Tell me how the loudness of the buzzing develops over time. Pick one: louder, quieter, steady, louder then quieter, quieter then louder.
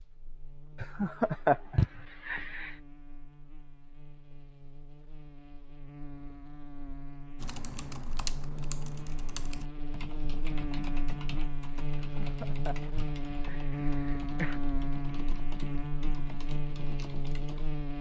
louder.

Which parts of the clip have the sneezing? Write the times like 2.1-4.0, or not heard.
not heard.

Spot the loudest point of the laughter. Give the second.
1 s.